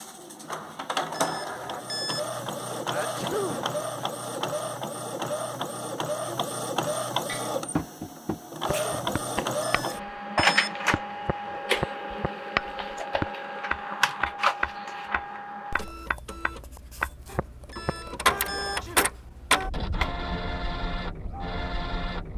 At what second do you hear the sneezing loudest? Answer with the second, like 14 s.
3 s.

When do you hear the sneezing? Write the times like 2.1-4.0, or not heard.
2.9-3.6, 8.7-9.2, 18.6-19.1.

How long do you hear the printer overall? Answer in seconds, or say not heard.
22 s.